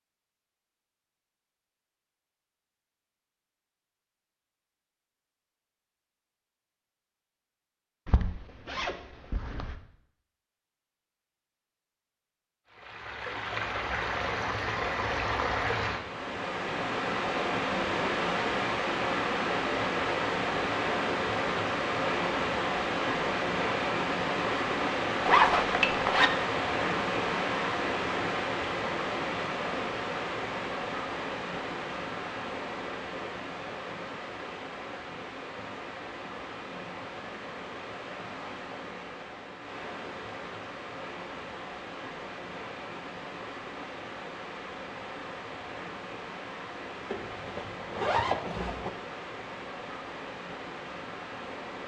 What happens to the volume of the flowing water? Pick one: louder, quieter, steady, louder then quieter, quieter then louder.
quieter.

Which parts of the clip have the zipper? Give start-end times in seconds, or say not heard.
8.1-9.8, 25.2-26.3, 47.1-48.9.